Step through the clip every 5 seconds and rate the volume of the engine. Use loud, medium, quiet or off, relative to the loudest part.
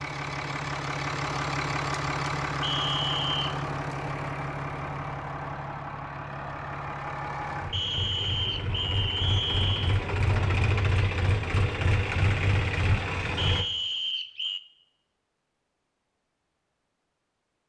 loud, medium, loud, off.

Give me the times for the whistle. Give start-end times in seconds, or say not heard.
2.6-3.6, 7.7-10.0, 13.3-14.6.